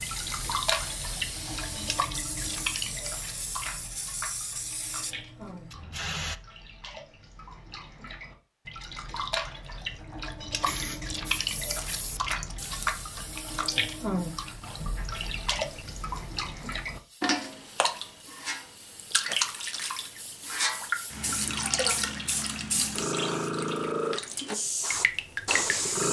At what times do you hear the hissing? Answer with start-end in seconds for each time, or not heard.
0.0-6.4, 10.7-26.0.